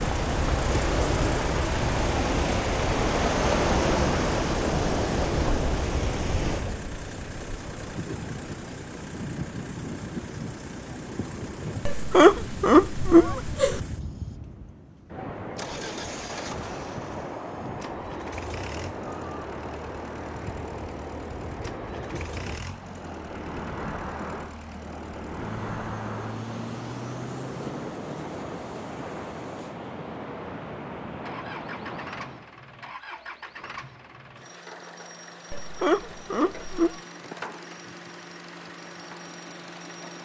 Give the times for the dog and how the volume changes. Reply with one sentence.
You can't hear the dog here.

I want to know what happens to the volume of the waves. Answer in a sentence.
The loudness of the waves goes down.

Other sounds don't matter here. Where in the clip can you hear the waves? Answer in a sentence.
You can hear the waves from 0.0 to 32.5 s.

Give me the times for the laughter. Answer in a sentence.
The laughter can be heard from 11.8 to 13.8 s and from 35.5 to 37.0 s.